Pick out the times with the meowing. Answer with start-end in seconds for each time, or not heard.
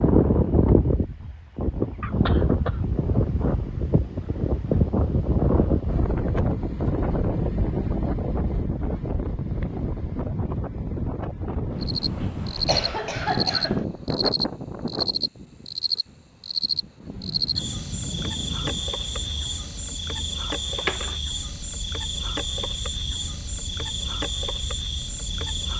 not heard.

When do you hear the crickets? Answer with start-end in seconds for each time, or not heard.
11.8-25.7.